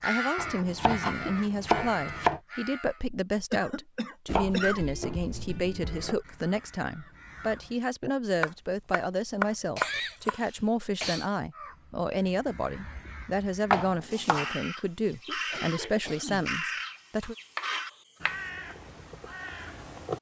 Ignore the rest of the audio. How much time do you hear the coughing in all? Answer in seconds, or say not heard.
4 s.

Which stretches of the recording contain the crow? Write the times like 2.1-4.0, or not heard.
0.0-3.0, 5.8-7.8, 11.5-20.1.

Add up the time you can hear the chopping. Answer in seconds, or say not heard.
8 s.